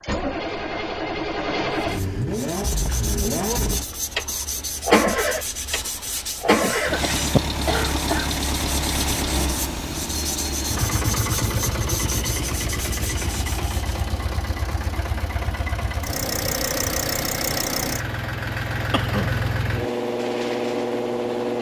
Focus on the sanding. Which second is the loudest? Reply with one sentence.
The loudest moment of the sanding is at 7 seconds.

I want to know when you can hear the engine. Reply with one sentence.
The engine can be heard from 0.0 to 21.5 s.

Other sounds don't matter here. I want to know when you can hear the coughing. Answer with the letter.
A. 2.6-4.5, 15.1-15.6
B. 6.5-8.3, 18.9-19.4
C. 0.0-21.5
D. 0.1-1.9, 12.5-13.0
B.